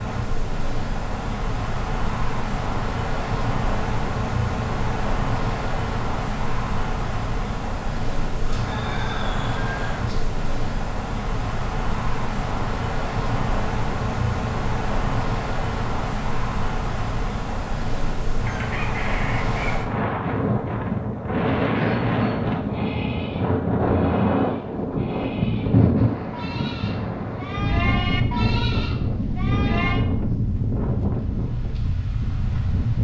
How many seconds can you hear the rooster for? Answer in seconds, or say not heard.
3 s.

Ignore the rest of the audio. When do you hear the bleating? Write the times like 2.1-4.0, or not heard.
21.8-30.1.